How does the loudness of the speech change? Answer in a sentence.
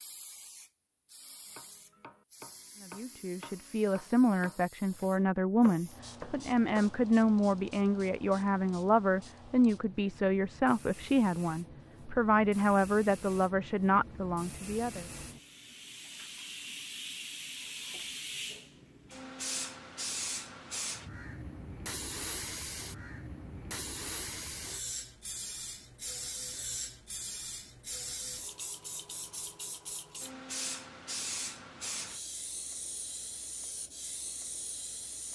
The volume of the speech stays about the same.